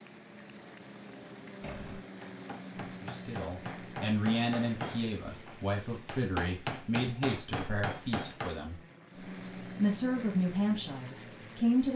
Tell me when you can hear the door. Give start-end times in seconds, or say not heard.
not heard.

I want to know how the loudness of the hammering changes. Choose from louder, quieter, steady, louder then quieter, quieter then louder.
louder.